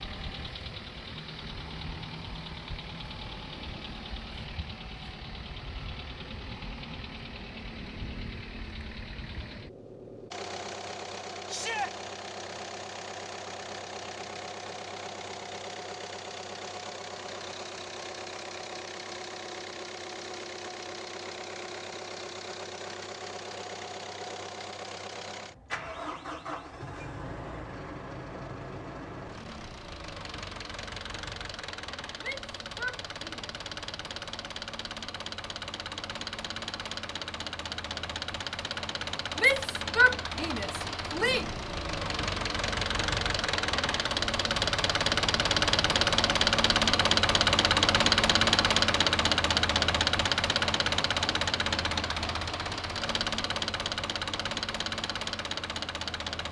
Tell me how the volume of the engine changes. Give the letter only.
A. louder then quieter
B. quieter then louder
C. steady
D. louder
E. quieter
D.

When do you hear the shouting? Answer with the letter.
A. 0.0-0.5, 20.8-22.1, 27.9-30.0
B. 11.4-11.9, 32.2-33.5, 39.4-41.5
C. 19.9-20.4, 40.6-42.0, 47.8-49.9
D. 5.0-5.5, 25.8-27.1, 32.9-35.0
B.